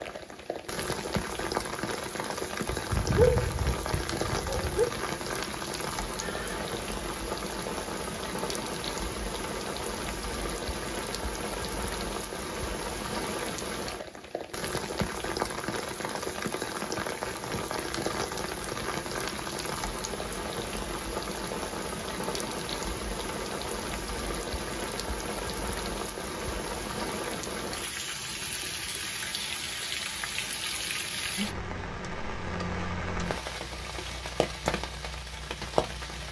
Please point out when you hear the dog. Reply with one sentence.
You can hear the dog from 2.6 to 4.9 s.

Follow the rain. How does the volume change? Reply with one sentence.
The loudness of the rain stays about the same.